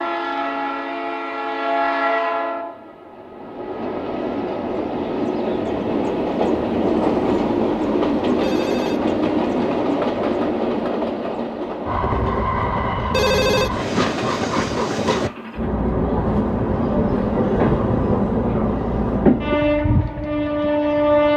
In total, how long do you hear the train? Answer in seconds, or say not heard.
21 s.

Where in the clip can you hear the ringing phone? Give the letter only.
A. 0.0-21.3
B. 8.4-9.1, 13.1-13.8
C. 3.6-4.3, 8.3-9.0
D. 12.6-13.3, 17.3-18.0
B.